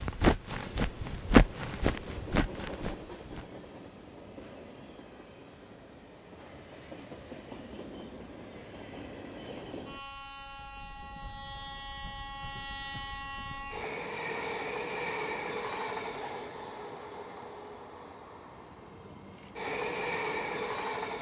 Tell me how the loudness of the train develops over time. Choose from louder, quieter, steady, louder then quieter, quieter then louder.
louder.